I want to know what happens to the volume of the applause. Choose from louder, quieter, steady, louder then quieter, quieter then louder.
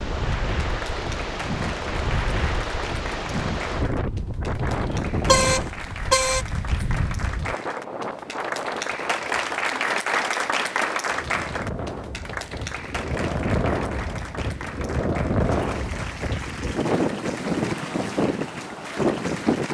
louder then quieter.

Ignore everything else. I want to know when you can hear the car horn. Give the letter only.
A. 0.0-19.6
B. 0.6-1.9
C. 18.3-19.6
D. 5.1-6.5
D.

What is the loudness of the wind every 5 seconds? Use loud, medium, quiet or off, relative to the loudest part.
loud, medium, medium, loud.